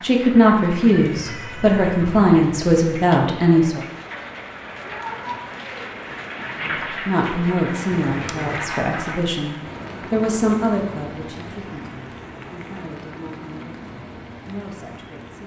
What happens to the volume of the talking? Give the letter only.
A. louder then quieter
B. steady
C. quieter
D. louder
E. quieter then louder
C.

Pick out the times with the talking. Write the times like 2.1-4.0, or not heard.
0.0-3.8, 6.6-15.4.